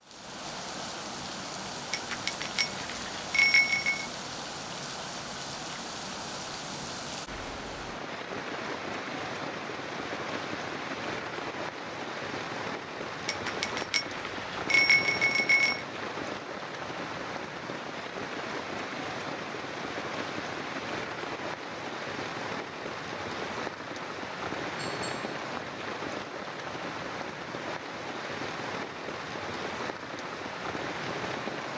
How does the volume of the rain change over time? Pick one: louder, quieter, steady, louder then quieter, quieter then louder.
steady.